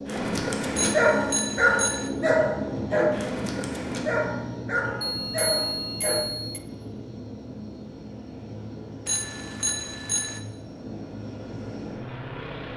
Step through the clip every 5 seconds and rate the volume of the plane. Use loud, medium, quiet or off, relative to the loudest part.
loud, medium, medium.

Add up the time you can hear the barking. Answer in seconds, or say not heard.
6 s.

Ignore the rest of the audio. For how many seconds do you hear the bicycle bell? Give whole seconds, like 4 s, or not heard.
4 s.